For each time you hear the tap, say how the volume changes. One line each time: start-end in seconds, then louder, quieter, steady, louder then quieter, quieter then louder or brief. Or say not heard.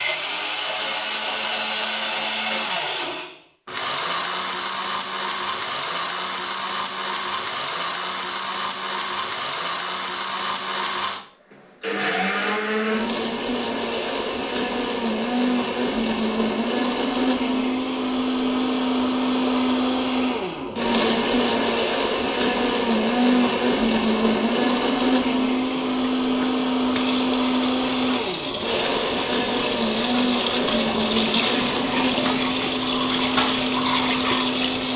24.4-34.9 louder.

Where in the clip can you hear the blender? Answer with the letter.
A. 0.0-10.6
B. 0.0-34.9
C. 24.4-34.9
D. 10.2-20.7
B.